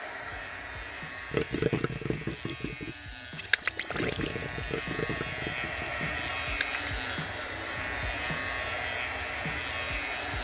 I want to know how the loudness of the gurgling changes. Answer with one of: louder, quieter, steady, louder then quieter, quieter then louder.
quieter.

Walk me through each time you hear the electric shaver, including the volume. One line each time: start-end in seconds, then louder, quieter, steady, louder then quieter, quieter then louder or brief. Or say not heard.
0.0-10.3 louder.